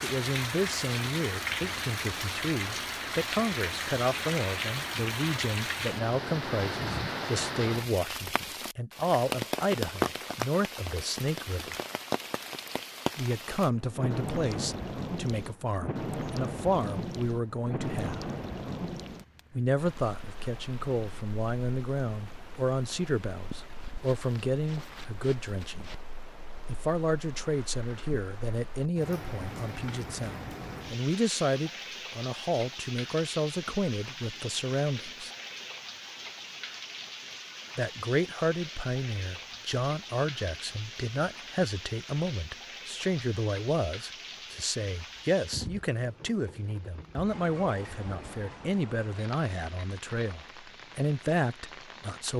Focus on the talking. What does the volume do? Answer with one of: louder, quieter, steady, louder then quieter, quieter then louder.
steady.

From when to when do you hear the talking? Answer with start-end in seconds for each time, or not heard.
0.0-11.8, 13.2-18.2, 19.5-25.9, 26.6-35.3, 37.8-52.3.